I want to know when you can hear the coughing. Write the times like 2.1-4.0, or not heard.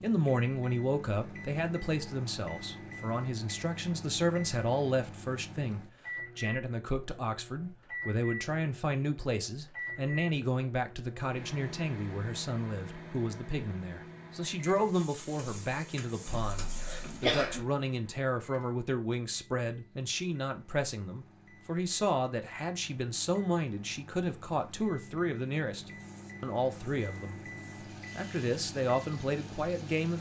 16.4-17.6.